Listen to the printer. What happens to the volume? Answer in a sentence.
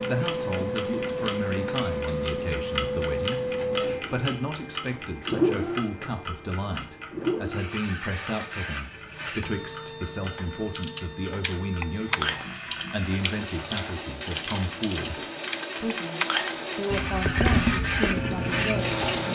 The volume of the printer goes down, then up.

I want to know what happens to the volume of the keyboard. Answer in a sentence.
The volume of the keyboard goes down, then up.